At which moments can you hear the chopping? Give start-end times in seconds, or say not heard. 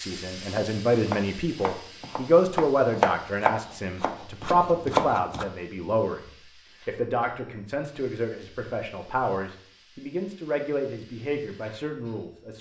0.3-5.5.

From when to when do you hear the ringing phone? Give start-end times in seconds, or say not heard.
not heard.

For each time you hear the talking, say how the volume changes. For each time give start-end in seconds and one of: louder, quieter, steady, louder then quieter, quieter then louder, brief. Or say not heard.
0.0-12.5 quieter.